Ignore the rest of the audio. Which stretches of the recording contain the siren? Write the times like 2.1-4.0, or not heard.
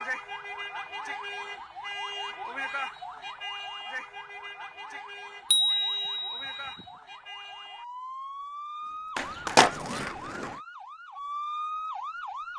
0.0-12.5.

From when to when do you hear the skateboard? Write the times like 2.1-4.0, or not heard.
9.2-10.6.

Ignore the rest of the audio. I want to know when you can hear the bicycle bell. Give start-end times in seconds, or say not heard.
5.5-6.8.